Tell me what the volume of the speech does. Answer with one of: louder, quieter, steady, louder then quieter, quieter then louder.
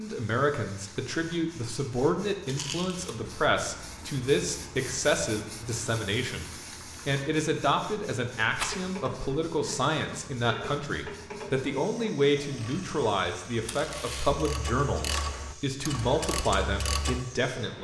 steady.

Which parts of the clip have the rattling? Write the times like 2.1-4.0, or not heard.
2.5-3.1, 8.4-8.8, 13.7-14.3.